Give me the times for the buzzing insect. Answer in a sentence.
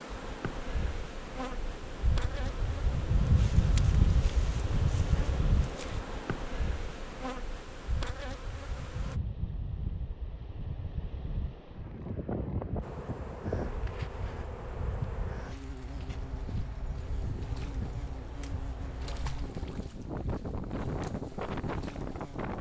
You can hear the buzzing insect from 0.0 to 9.2 s and from 12.8 to 22.5 s.